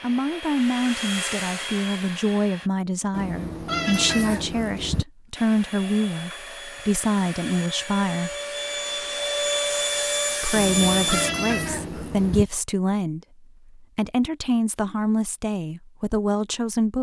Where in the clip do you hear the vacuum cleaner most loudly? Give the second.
10 s.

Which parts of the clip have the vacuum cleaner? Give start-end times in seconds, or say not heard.
0.0-2.7, 5.3-11.3.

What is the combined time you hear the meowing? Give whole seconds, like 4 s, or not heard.
4 s.